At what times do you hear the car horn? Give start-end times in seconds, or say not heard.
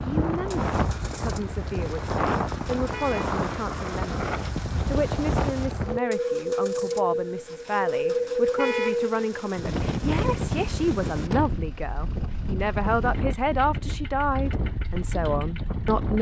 2.9-3.4, 8.6-9.1.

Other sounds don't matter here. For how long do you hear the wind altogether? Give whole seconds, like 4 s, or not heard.
16 s.